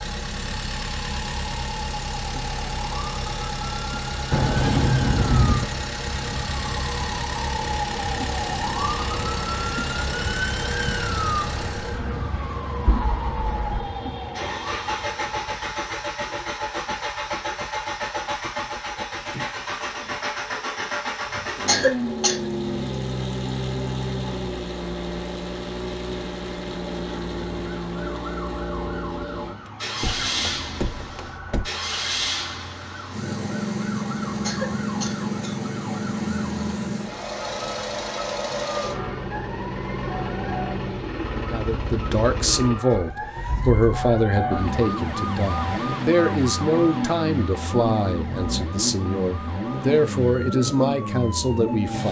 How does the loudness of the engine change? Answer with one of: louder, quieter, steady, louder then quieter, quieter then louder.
steady.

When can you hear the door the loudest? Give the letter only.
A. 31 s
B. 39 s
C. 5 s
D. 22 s
C.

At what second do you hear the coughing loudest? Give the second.
22 s.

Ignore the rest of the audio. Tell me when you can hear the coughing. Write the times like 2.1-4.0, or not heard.
21.6-22.4, 34.4-35.6.